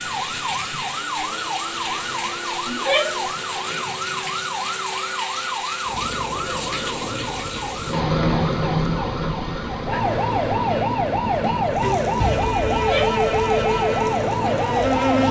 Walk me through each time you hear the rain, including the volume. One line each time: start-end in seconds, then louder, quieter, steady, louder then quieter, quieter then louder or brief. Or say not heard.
0.0-15.2 louder then quieter.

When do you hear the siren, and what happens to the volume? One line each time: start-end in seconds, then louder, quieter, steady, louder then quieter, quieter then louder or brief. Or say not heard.
0.0-15.2 louder.